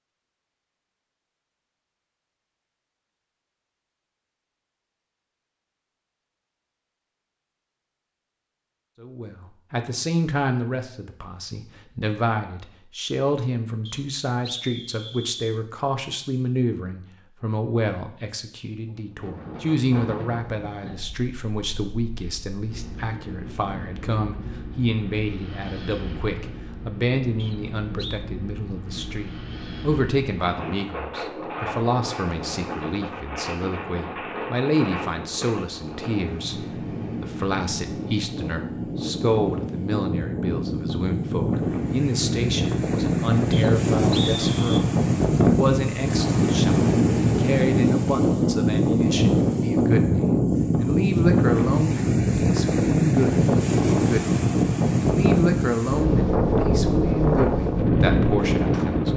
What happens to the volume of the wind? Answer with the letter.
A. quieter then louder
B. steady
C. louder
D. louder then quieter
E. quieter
C.